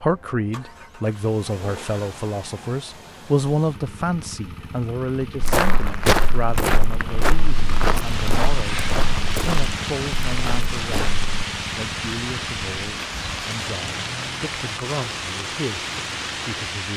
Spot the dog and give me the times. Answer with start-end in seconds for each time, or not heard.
not heard.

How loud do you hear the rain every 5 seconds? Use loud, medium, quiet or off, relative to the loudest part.
off, loud, loud, loud.